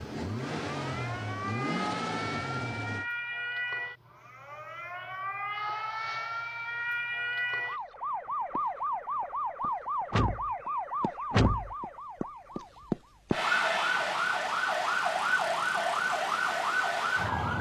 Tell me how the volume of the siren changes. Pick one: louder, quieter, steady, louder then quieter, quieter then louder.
louder.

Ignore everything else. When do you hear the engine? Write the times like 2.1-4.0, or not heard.
0.0-3.0.